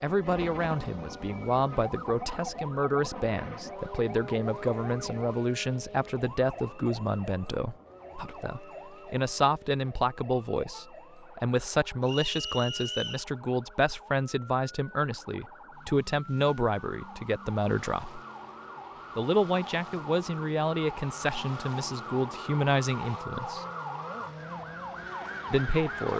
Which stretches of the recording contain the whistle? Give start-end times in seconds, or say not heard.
12.1-13.2.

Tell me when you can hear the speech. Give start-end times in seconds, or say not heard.
0.0-18.2, 19.1-23.6, 25.5-26.1.